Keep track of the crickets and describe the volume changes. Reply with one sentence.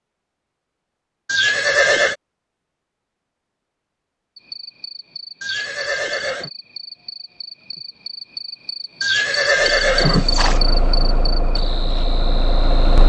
The volume of the crickets goes up, then down.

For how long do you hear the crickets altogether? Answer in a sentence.
The crickets can be heard for 9 seconds in total.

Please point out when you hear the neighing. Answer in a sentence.
You can hear the neighing from 1.2 to 2.1 s, from 5.4 to 6.5 s and from 9.0 to 10.6 s.